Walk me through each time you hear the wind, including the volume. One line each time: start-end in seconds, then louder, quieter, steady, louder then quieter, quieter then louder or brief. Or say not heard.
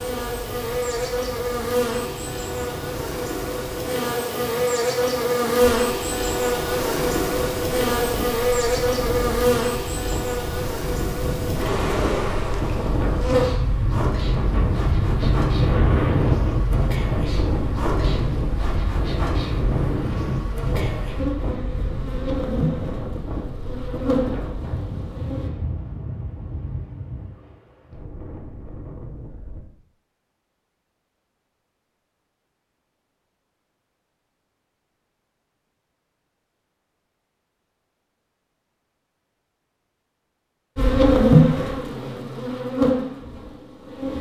0.0-29.6 louder then quieter.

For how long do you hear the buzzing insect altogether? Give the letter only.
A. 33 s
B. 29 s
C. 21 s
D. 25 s
B.